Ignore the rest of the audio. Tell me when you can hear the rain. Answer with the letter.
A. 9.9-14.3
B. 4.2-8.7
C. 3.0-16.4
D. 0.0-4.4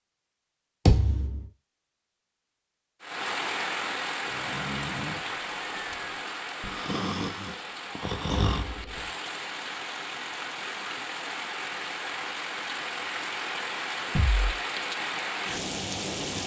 C.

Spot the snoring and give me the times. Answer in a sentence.
The snoring can be heard from 4.2 to 8.7 s.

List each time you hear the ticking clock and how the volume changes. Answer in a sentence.
The ticking clock can't be heard in this clip.